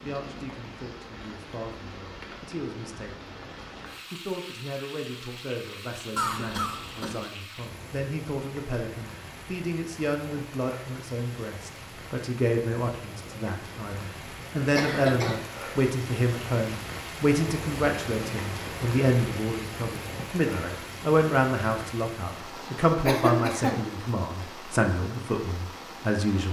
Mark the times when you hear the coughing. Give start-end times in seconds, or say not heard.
6.2-7.2, 14.8-15.4, 23.1-23.9.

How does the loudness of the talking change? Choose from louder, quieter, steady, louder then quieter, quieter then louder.
louder.